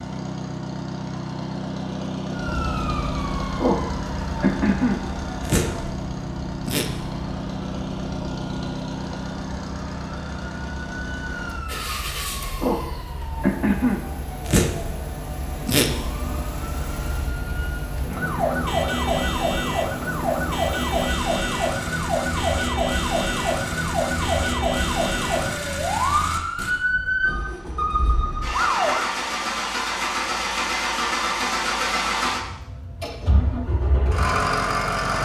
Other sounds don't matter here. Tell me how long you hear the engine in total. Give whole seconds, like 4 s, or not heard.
35 s.